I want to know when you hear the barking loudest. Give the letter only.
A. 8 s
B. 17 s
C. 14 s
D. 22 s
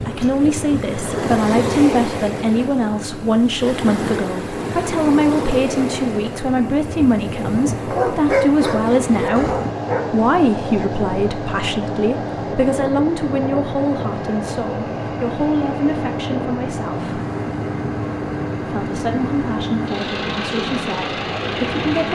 A.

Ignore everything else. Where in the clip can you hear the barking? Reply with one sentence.
You can hear the barking from 7.9 to 10.1 s.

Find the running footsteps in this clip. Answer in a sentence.
You can't hear the running footsteps here.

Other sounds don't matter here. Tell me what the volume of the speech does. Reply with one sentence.
The volume of the speech goes down.